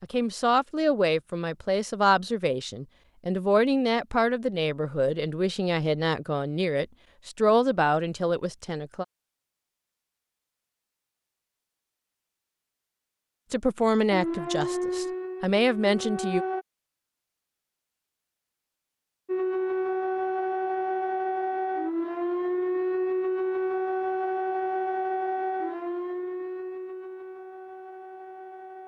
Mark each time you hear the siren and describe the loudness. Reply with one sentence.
The siren can be heard briefly from 14.1 to 16.6 s; and from 19.2 to 28.8 s, getting quieter.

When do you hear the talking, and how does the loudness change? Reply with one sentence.
You can hear the talking from 0.0 to 9.1 s, at a steady volume; and briefly from 13.5 to 16.4 s.